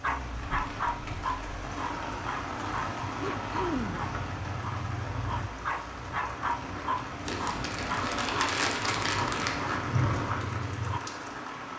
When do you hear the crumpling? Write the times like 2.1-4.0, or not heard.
0.3-1.4, 7.2-9.8.